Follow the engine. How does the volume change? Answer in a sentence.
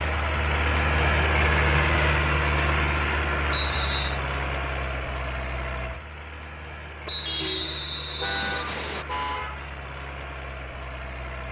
The loudness of the engine goes down.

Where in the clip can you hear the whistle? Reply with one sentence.
You can hear the whistle from 3.5 to 4.2 s and from 7.0 to 9.1 s.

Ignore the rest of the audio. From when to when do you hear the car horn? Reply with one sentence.
The car horn can be heard from 7.2 to 9.7 s.